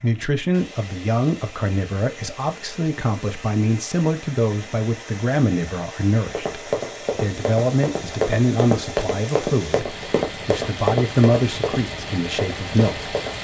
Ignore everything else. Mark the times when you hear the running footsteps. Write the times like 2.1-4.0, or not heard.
6.2-13.3.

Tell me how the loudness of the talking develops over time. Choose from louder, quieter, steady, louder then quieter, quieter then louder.
steady.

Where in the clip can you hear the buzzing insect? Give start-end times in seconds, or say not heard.
not heard.